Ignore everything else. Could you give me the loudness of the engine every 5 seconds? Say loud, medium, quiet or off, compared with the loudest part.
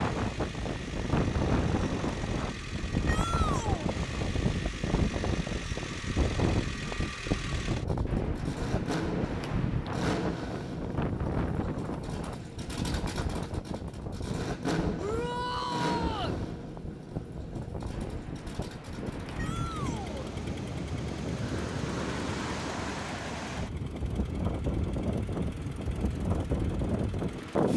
medium, loud, loud, loud, medium, medium.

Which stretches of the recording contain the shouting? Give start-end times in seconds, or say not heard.
3.0-3.9, 14.9-16.4, 19.4-20.1.